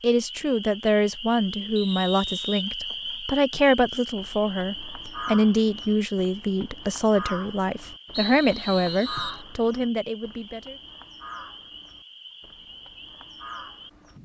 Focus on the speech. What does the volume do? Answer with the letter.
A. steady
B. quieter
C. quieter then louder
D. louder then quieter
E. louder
A.